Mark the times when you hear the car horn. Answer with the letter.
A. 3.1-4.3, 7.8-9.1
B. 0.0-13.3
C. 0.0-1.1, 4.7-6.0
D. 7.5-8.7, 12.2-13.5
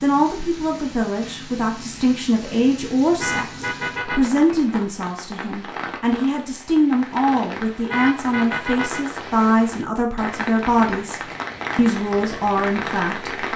A.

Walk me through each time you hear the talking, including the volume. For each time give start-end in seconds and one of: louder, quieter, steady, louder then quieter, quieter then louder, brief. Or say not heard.
0.0-13.3 steady.